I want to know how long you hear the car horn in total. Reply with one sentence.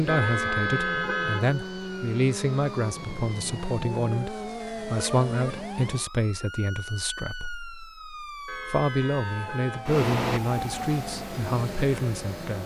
The car horn can be heard for 4 seconds in total.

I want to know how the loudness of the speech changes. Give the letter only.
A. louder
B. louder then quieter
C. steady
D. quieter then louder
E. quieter
C.